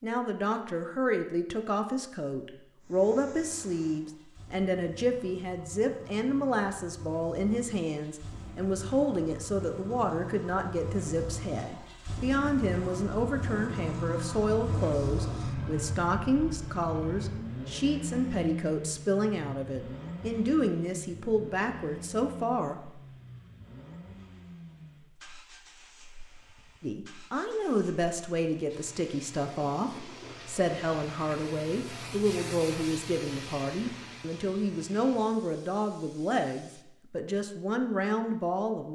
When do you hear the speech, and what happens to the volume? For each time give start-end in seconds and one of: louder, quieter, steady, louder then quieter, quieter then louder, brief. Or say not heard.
0.0-23.0 steady
26.8-38.9 steady.